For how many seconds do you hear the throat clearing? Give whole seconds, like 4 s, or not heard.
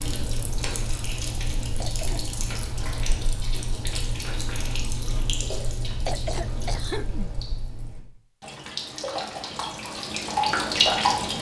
2 s.